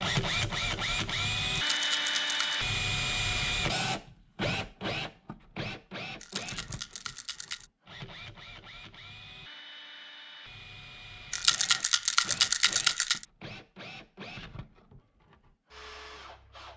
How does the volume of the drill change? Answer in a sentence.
The volume of the drill goes down.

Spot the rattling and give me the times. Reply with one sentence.
You can hear the rattling from 1.6 to 2.6 s, from 6.2 to 7.7 s and from 11.3 to 13.2 s.